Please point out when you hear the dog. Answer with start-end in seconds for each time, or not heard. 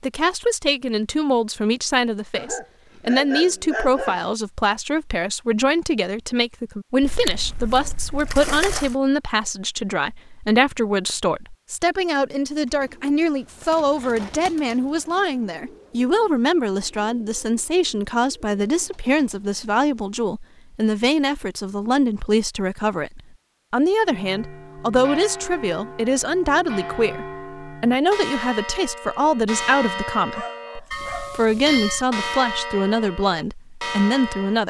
2.4-4.3, 30.3-31.4.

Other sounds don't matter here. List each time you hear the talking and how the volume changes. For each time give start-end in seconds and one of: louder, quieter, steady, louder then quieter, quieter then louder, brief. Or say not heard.
0.0-34.6 steady.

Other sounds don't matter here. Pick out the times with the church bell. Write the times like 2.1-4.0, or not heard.
24.0-34.6.